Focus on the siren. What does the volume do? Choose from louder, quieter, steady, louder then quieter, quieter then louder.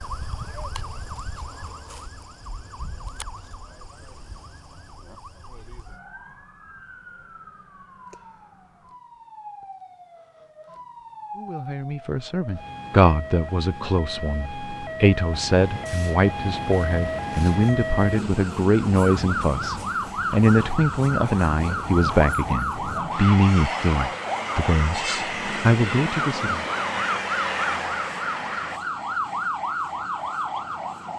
louder.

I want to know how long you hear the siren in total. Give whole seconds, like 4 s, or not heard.
31 s.